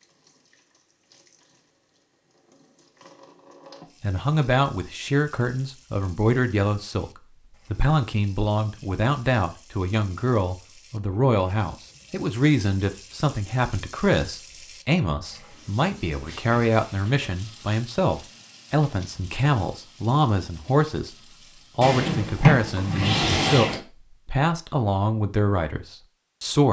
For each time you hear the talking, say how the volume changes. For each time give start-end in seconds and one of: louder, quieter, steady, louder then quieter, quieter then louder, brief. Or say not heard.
4.0-26.6 steady.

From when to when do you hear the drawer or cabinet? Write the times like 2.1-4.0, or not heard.
21.8-23.8.